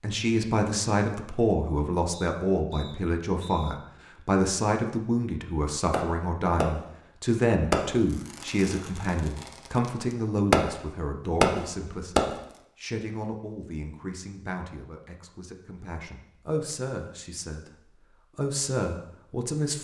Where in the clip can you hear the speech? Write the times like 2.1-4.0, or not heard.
0.0-19.7.